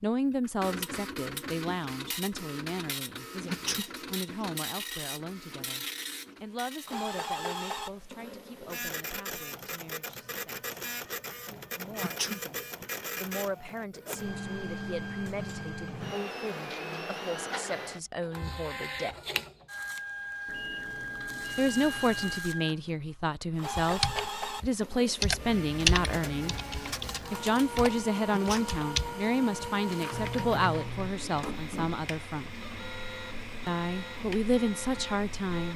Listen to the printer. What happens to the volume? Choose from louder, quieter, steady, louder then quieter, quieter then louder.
steady.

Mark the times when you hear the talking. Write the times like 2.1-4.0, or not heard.
0.0-10.7, 11.8-19.1, 21.6-26.6, 27.3-32.5, 33.6-35.7.